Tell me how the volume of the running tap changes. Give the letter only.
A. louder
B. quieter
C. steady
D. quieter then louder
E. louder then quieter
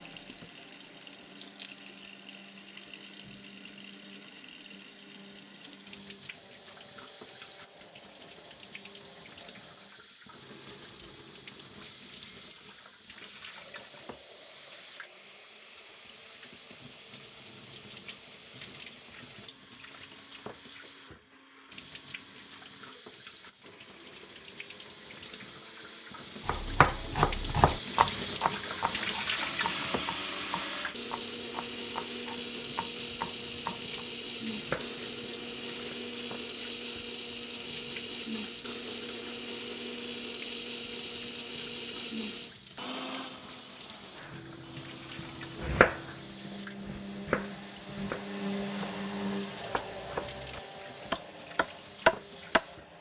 E.